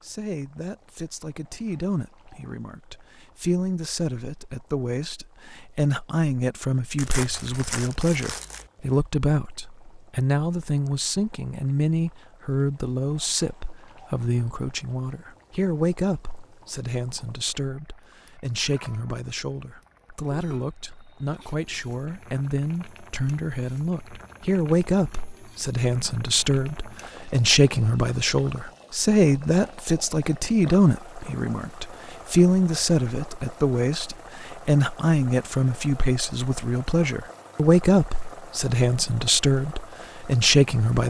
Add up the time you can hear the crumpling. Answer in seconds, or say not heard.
2 s.